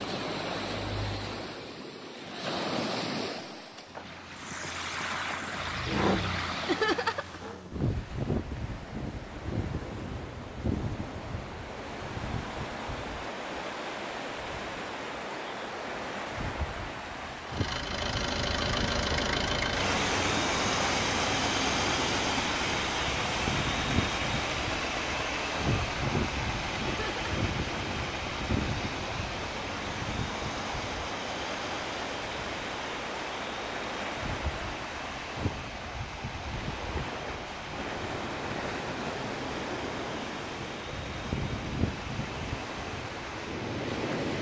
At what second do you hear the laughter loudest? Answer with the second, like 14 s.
7 s.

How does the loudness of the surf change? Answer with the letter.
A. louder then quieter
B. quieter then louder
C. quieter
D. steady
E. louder
D.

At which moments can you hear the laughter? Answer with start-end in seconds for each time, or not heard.
6.7-7.4, 26.9-27.3.